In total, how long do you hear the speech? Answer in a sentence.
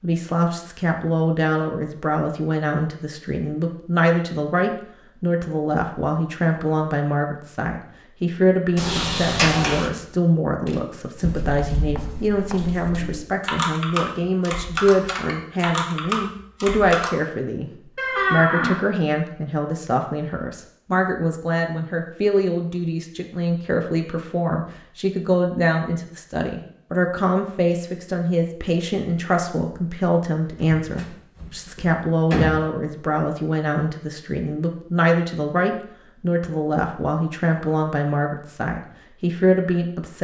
The speech can be heard for 40 seconds in total.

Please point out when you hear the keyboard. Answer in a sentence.
The keyboard can be heard from 10.7 to 17.1 s.